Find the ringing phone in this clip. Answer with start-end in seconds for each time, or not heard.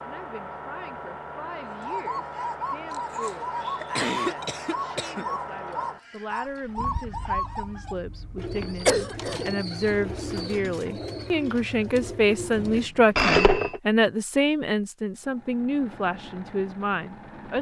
12.4-13.8.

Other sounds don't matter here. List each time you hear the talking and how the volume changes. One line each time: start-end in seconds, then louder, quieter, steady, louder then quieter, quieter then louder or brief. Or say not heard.
0.0-17.5 louder.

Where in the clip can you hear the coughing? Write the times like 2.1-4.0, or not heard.
2.9-5.2, 8.8-9.4.